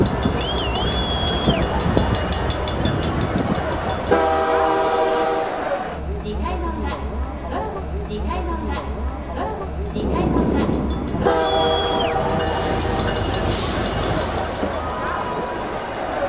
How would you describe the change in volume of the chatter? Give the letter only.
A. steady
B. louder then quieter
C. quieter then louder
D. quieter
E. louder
A.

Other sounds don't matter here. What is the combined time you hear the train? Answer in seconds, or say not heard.
12 s.